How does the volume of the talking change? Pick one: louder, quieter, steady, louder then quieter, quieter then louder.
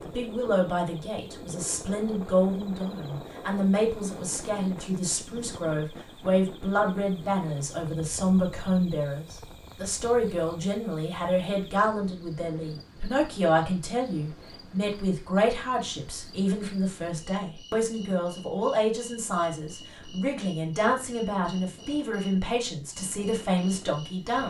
steady.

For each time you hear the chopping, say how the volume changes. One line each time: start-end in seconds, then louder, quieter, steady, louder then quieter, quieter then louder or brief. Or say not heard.
not heard.